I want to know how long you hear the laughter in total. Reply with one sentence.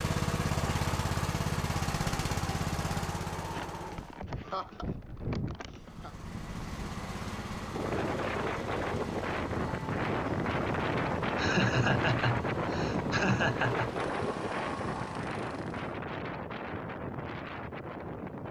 You can hear the laughter for 5 seconds altogether.